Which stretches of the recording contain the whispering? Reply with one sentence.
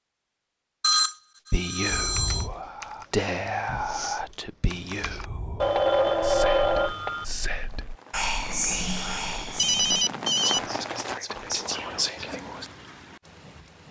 You can hear the whispering from 1.5 to 12.7 s.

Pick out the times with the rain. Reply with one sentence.
The rain can be heard from 6.8 to 13.8 s.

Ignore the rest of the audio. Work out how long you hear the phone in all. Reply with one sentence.
You can hear the phone for 4 seconds altogether.